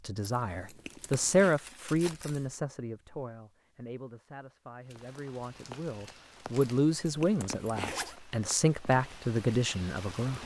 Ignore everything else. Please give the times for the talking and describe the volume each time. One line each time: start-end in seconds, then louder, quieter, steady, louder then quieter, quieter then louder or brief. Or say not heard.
0.0-10.4 quieter then louder.